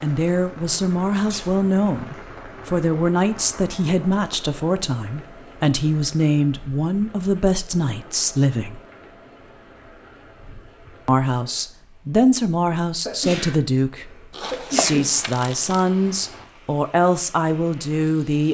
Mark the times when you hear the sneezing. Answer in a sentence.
The sneezing can be heard from 1.1 to 1.7 s and from 13.1 to 15.1 s.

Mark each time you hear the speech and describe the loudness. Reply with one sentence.
You can hear the speech from 0.0 to 8.8 s, at a steady volume; and from 11.1 to 18.4 s, at a steady volume.